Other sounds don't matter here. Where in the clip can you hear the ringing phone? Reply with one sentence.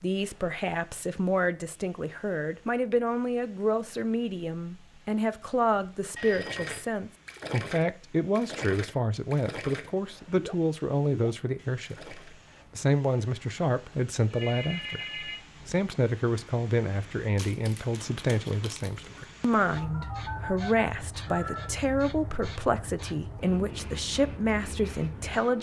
You can hear the ringing phone from 6.2 to 6.8 s, from 14.3 to 15.4 s and from 19.8 to 21.7 s.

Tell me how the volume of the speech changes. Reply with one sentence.
The volume of the speech stays about the same.